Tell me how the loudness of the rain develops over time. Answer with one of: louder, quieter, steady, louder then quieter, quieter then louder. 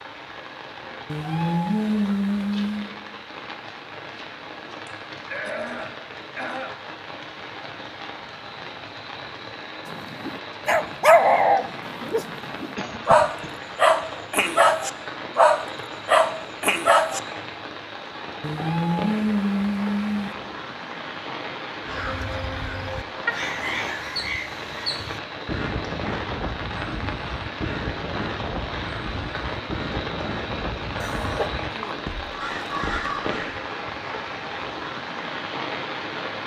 louder.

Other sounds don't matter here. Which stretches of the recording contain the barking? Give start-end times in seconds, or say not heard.
9.9-17.2.